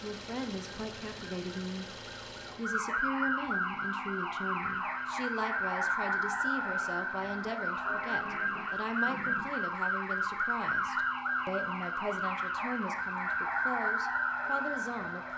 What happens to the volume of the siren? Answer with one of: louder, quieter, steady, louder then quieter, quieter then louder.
steady.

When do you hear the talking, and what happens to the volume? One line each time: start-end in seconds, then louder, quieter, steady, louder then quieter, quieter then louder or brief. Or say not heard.
0.0-15.3 steady.